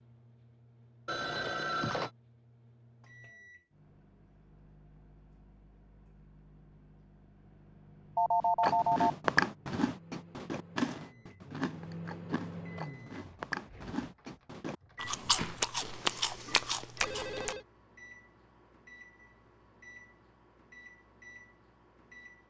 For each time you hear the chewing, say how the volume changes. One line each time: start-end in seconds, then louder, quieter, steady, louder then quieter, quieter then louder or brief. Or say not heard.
8.6-17.6 quieter then louder.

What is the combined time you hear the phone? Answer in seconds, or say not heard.
3 s.